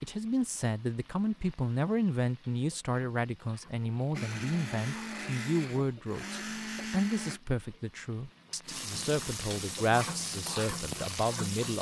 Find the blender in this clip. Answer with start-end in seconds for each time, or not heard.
4.1-7.4.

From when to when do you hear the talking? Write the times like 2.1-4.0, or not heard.
0.0-11.7.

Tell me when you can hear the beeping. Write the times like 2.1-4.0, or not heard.
not heard.